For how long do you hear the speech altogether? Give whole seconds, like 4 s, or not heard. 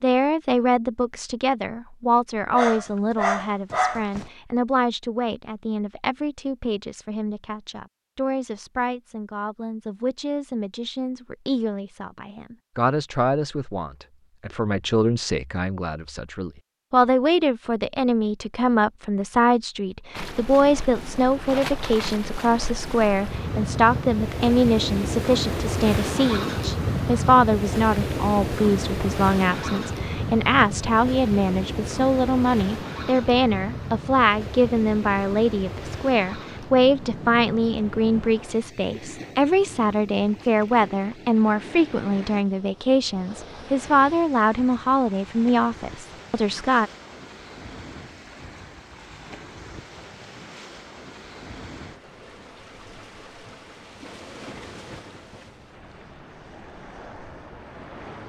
47 s.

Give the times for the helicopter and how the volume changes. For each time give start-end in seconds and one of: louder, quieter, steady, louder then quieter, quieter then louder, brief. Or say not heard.
not heard.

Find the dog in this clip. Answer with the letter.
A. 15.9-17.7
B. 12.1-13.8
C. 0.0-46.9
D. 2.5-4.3
D.